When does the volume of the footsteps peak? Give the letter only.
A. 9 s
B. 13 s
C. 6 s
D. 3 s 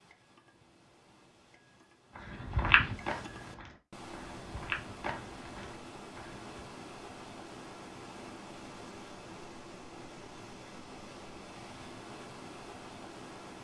D.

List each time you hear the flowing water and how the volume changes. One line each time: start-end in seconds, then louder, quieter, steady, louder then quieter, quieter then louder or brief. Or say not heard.
0.0-13.5 louder.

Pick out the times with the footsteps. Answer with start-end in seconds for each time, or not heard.
2.3-6.5.